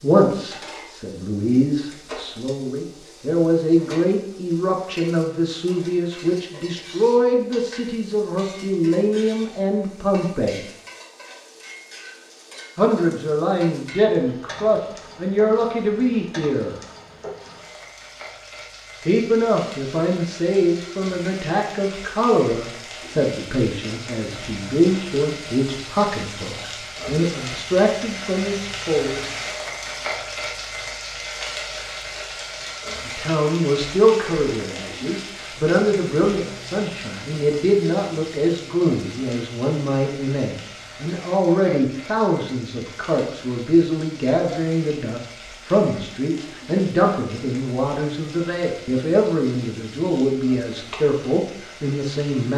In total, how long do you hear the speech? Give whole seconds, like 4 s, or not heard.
44 s.